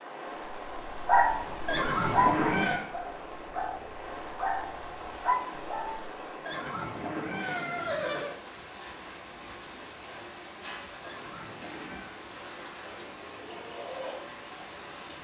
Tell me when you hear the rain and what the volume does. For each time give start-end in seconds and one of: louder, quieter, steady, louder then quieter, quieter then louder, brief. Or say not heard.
0.0-15.1 steady.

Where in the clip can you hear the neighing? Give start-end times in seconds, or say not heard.
1.6-2.8, 6.5-8.4, 11.0-12.2.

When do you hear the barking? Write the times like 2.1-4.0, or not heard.
0.7-6.2.